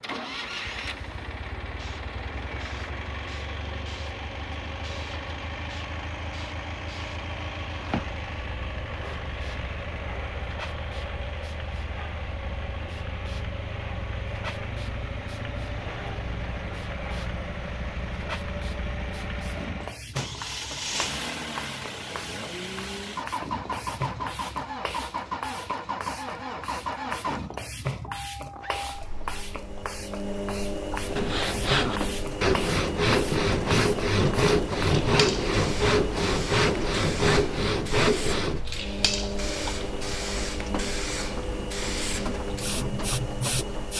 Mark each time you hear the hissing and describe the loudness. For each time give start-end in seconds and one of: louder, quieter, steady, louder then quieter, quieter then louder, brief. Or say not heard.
0.0-43.9 louder.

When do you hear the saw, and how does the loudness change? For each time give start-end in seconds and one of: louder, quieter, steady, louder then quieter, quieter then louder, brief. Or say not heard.
31.1-38.6 steady.